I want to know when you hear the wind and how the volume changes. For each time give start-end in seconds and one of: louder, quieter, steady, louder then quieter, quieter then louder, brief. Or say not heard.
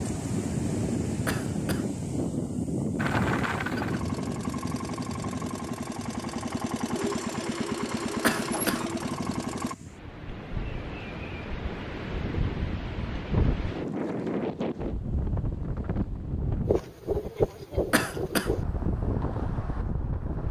0.0-20.4 quieter then louder.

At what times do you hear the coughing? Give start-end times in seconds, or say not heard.
1.2-1.9, 8.2-8.8, 17.9-18.5.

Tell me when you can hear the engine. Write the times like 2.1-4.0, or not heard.
3.0-9.8.